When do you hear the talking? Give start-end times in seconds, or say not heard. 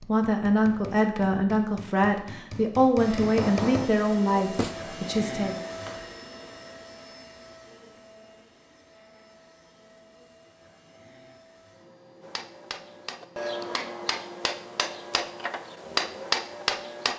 0.0-5.6.